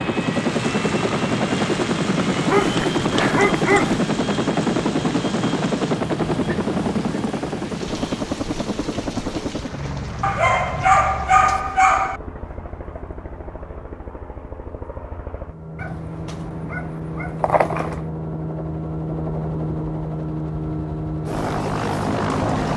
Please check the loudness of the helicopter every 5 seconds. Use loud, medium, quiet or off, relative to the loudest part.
loud, loud, quiet, medium, loud.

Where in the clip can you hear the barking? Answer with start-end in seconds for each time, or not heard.
2.5-4.0, 10.2-12.2, 15.8-18.1.